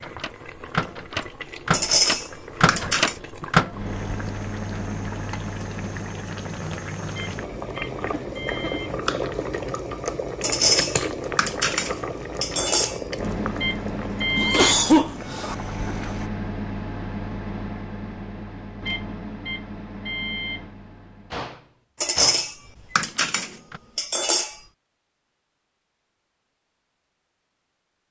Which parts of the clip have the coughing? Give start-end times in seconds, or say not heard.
8.4-9.1, 14.3-15.6.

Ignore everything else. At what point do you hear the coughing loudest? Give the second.
15 s.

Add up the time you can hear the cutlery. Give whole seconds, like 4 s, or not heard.
7 s.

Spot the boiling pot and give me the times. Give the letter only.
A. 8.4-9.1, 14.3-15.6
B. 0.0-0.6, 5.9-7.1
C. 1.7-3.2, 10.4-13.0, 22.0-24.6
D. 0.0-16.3
D.